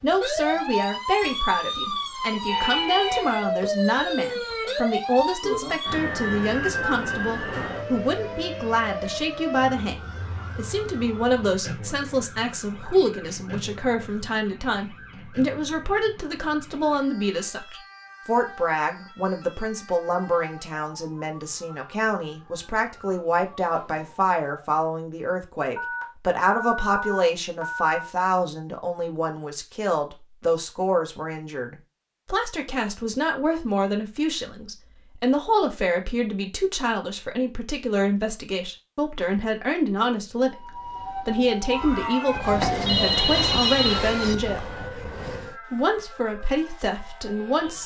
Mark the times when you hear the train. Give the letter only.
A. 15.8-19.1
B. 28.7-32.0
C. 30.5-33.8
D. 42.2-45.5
D.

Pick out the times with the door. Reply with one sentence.
You can't hear the door here.